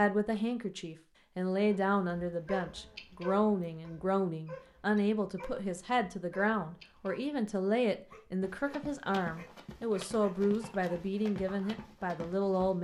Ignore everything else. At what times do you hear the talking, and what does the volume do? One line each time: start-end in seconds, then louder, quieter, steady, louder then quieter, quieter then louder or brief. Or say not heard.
0.0-12.7 steady.